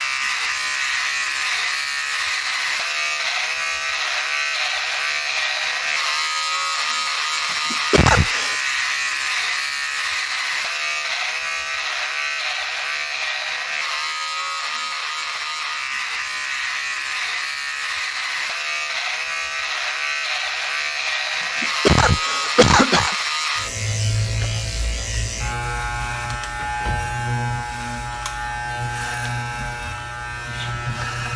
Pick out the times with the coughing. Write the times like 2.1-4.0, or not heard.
7.5-8.6, 21.6-23.1.